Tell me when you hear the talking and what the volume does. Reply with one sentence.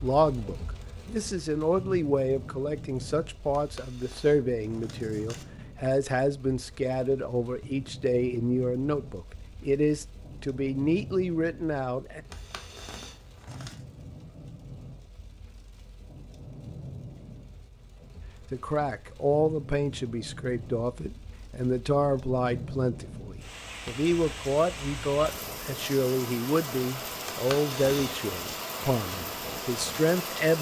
You can hear the talking from 0.0 to 12.2 s, at a steady volume; and from 18.5 to 30.5 s, at a steady volume.